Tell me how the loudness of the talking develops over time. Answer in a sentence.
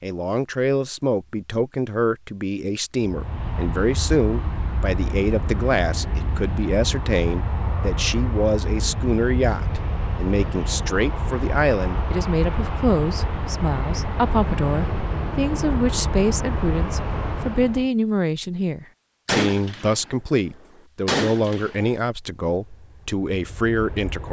The loudness of the talking stays about the same.